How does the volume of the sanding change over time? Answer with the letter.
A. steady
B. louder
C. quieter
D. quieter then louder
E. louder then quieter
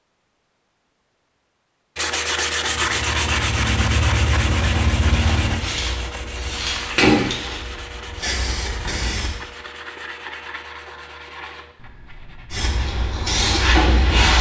C.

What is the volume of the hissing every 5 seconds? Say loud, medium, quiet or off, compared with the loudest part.
off, loud, loud.